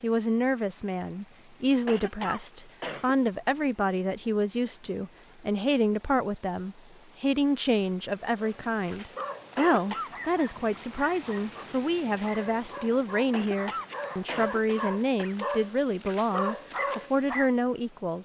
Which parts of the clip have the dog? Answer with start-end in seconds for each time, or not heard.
8.3-17.5.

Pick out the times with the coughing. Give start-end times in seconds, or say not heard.
1.9-3.1, 9.6-10.1, 13.3-15.4.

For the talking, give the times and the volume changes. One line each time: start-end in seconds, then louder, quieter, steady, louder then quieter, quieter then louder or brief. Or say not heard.
0.0-18.2 steady.